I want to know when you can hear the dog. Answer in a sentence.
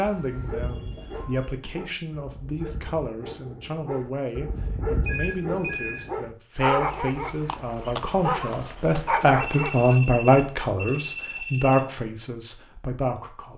You can hear the dog from 0.3 to 10.0 s.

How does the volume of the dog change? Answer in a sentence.
The volume of the dog goes up.